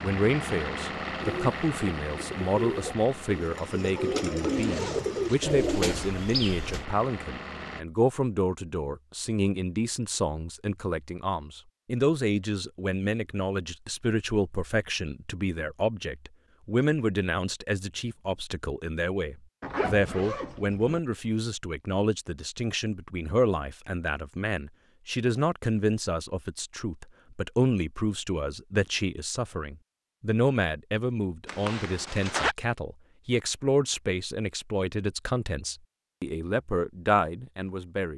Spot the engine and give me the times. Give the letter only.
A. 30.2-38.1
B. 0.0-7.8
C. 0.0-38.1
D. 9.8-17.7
B.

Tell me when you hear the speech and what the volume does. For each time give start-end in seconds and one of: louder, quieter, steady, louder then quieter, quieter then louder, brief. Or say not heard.
0.0-38.1 steady.